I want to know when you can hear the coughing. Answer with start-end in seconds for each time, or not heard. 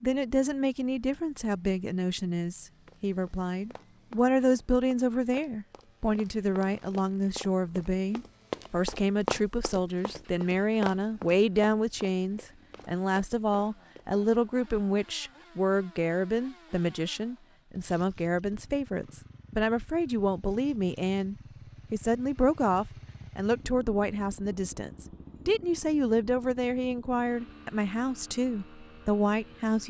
not heard.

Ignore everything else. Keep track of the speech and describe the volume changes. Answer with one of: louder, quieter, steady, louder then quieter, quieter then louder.
steady.